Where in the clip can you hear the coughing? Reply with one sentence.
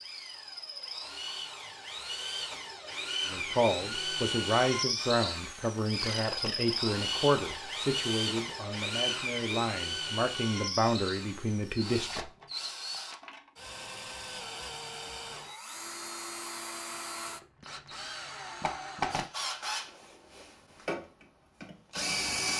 The coughing can be heard from 6.0 to 6.6 s.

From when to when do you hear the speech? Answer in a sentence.
The speech can be heard from 3.2 to 12.3 s.